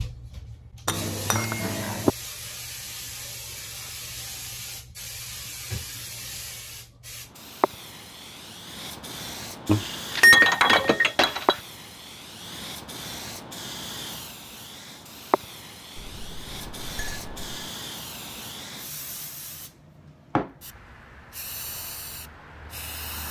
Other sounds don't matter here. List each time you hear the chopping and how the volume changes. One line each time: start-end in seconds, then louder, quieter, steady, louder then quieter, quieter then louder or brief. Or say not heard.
not heard.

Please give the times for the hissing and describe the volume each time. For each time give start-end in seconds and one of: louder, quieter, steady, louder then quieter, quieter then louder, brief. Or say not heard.
0.0-23.2 steady.